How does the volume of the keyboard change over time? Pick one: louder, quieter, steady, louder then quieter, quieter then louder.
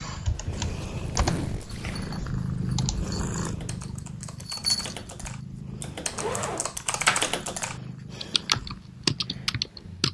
quieter then louder.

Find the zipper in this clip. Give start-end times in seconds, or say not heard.
0.3-2.1, 6.2-7.3.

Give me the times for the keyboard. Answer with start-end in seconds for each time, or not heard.
0.0-10.0.